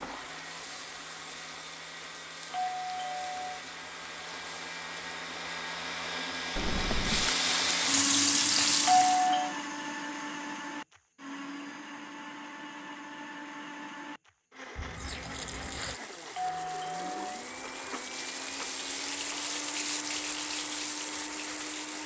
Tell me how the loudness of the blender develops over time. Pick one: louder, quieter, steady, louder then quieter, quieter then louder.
louder then quieter.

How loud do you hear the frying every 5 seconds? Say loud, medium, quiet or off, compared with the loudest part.
quiet, loud, off, medium, medium.